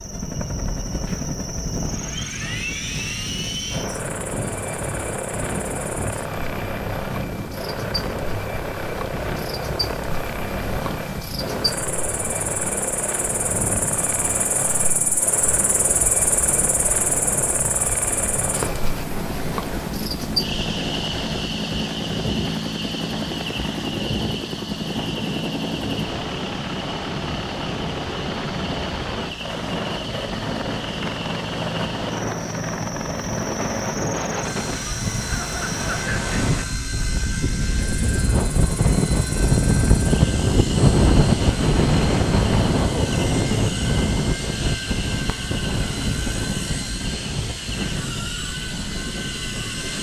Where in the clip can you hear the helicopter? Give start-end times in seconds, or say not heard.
0.0-49.9.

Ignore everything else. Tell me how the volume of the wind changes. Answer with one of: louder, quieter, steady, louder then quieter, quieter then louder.
louder.